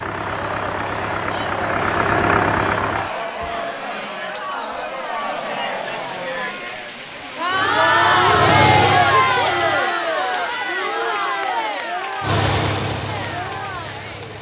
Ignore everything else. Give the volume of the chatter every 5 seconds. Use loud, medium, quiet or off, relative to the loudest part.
medium, loud, medium.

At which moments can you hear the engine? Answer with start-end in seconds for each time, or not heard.
0.0-3.1, 7.5-9.8, 12.2-14.3.